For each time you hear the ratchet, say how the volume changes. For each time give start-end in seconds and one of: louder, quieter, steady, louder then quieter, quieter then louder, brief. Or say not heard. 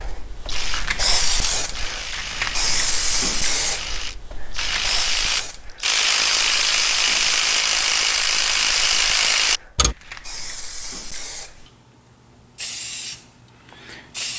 0.5-9.9 louder.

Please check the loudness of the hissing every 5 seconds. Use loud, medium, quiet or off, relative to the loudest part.
loud, medium, medium.